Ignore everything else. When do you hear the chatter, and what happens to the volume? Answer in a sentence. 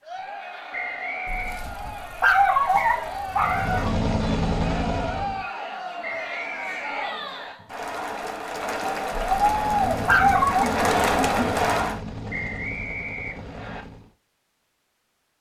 You can hear the chatter from 0.0 to 12.0 s, getting louder.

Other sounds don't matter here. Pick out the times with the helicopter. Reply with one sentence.
The helicopter can be heard from 3.4 to 5.5 s and from 9.4 to 14.1 s.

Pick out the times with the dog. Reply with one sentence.
The dog can be heard from 1.2 to 4.0 s and from 9.1 to 10.7 s.